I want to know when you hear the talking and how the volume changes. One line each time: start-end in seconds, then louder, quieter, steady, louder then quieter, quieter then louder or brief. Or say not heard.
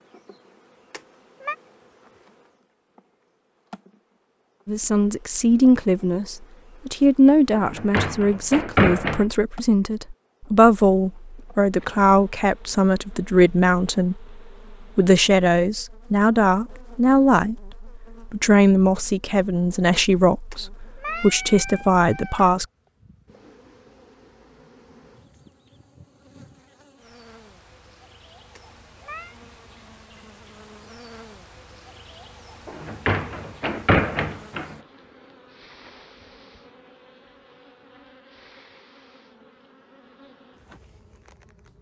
4.7-22.6 steady.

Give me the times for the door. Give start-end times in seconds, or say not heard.
7.5-9.2, 32.6-34.8.